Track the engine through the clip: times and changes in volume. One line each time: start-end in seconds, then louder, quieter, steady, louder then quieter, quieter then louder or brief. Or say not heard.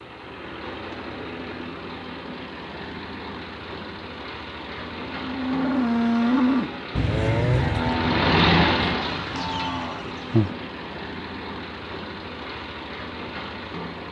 0.0-14.0 louder then quieter.